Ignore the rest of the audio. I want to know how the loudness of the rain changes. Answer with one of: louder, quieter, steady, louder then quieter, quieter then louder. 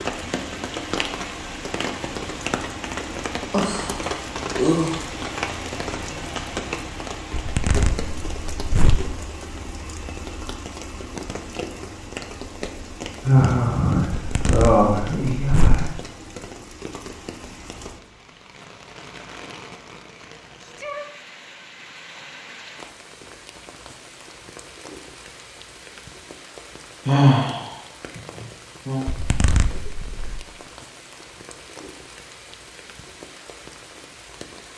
quieter.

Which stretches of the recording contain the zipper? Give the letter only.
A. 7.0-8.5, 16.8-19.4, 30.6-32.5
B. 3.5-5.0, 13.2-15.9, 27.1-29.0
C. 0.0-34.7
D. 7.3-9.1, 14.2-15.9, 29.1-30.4
D.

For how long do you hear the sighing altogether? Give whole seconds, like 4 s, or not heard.
6 s.